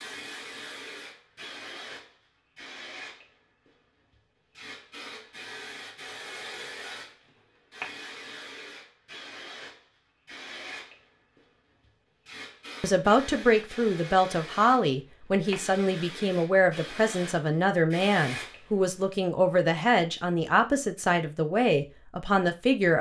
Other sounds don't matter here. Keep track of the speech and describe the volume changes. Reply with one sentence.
The volume of the speech stays about the same.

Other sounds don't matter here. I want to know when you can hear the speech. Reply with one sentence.
The speech can be heard from 12.8 to 22.9 s.